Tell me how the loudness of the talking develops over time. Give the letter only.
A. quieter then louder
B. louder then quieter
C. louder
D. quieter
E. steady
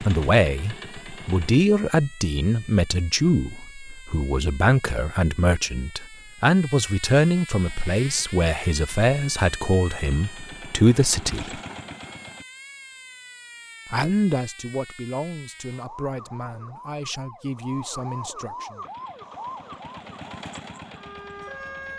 D.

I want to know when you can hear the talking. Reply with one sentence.
You can hear the talking from 0.0 to 11.6 s and from 13.9 to 18.9 s.